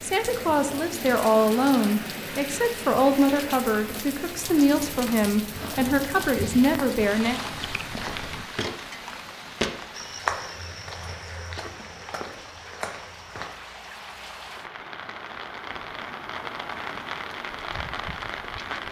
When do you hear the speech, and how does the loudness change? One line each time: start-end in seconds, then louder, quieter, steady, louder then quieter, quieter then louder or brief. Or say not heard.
0.0-7.4 steady.